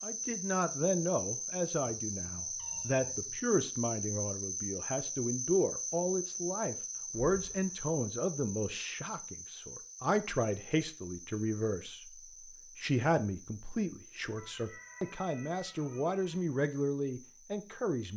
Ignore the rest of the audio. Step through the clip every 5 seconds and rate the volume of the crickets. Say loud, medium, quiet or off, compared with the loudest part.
loud, loud, quiet, quiet.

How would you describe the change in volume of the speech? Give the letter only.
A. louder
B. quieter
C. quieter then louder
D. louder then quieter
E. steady
E.